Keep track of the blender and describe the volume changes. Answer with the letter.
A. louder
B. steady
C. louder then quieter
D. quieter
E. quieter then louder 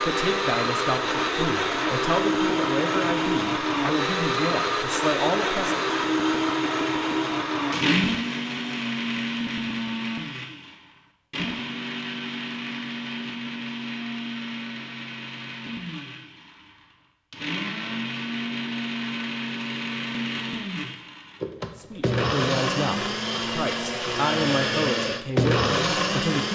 E.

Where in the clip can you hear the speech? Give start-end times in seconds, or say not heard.
0.0-5.8, 21.8-26.4.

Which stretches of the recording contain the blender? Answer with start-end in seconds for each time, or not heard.
0.0-26.4.